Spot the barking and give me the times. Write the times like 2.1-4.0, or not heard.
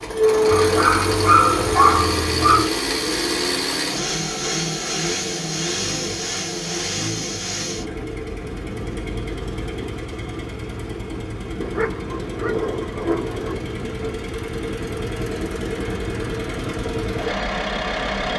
0.5-2.7, 11.6-13.6.